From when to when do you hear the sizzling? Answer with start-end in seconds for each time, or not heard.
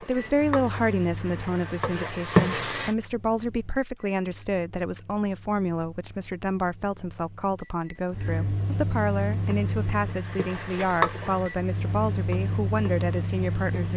0.0-3.0, 9.3-13.9.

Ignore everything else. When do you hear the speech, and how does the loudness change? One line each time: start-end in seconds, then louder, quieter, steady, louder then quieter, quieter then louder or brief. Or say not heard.
0.0-13.9 steady.